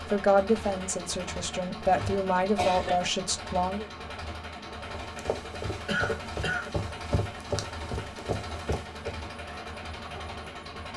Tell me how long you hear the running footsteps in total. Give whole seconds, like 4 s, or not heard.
4 s.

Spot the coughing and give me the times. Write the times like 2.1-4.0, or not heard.
1.8-3.1, 5.8-6.7.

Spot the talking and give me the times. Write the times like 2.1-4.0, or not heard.
0.1-3.9.